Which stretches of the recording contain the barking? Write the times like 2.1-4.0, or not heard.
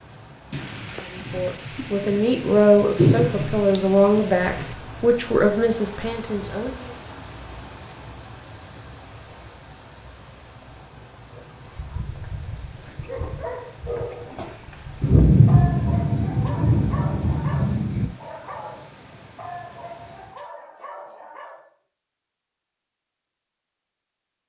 11.3-21.7.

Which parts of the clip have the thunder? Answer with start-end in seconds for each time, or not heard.
0.5-4.8, 15.0-18.1.